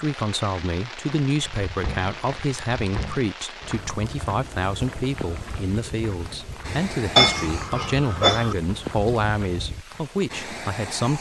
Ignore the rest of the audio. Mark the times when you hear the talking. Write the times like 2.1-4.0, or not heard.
0.0-11.1.